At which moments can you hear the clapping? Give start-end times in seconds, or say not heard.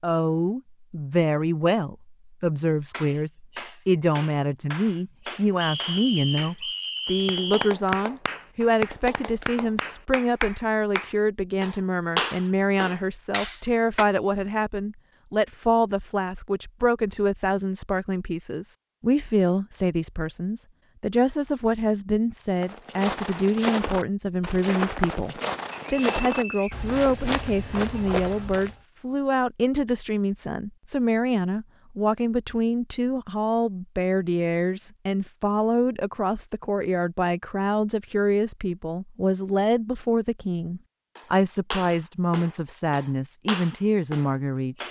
2.9-14.1, 41.1-44.8.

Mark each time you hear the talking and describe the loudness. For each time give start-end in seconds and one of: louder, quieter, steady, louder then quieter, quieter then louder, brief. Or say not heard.
0.0-44.8 steady.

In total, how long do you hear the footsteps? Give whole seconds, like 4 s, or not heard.
6 s.